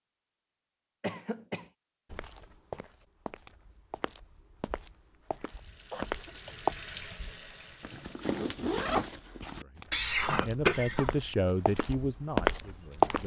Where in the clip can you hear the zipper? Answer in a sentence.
You can hear the zipper from 7.8 to 9.7 s.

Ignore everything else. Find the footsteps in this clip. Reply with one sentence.
The footsteps can be heard from 2.1 to 6.8 s and from 9.8 to 13.2 s.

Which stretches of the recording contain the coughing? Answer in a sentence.
The coughing can be heard from 1.0 to 1.7 s, from 5.9 to 6.5 s and from 9.9 to 11.2 s.